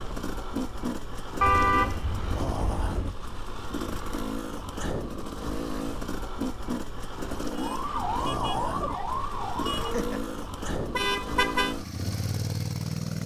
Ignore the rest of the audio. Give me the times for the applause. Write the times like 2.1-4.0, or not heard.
not heard.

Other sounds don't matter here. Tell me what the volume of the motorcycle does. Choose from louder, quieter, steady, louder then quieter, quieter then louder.
steady.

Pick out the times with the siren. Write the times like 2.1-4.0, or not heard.
7.5-10.3.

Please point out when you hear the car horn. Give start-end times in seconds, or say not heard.
1.4-3.2, 10.9-11.8.